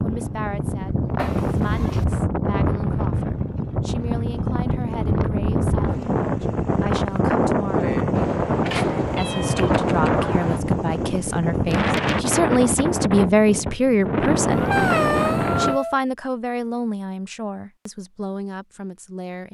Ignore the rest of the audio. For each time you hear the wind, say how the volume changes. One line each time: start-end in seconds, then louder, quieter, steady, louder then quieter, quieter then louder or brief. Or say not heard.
0.0-15.8 steady.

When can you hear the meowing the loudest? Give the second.
15 s.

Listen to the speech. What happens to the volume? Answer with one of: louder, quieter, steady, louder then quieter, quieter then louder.
louder then quieter.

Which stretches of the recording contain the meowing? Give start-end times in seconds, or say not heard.
1.1-2.0, 8.2-10.6, 14.5-16.0.